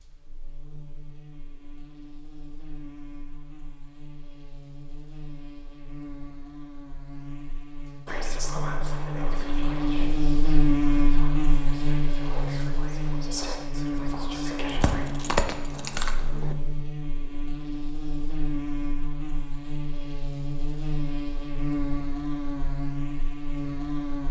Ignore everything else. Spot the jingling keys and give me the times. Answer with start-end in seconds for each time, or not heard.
14.7-16.6.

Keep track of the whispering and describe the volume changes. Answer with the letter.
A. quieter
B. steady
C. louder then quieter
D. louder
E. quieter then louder
E.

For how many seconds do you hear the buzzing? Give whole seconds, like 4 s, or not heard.
24 s.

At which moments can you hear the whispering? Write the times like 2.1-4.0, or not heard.
8.1-15.1.